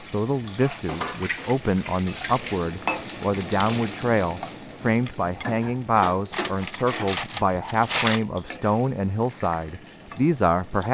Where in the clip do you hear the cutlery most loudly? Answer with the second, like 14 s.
8 s.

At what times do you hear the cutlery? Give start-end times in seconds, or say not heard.
0.8-2.6, 6.3-8.2.